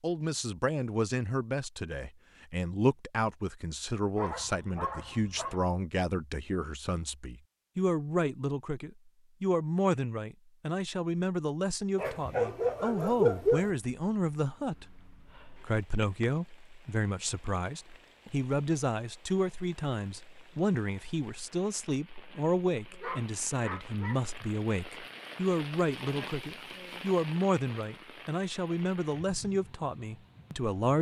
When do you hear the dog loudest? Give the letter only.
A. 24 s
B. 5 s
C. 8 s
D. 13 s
D.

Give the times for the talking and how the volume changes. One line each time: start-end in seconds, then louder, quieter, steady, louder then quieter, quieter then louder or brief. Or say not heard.
0.0-30.9 steady.